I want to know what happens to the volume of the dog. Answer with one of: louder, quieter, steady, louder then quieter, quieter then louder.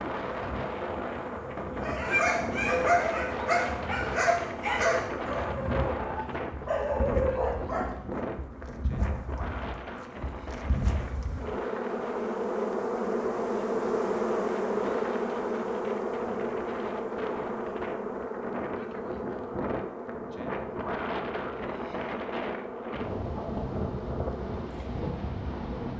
quieter then louder.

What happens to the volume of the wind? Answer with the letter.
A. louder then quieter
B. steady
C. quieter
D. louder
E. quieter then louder
E.